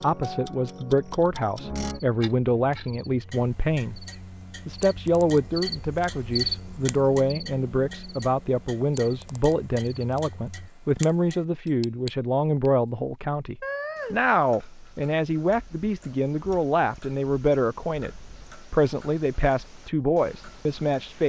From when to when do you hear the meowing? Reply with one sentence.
You can hear the meowing from 13.6 to 14.2 s.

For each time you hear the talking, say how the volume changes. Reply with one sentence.
The talking can be heard from 0.0 to 4.0 s, at a steady volume; and from 4.7 to 21.2 s, at a steady volume.